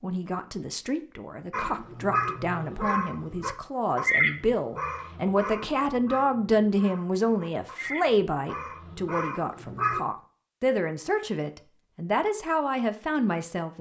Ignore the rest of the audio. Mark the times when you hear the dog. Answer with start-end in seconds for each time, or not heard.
1.5-10.0.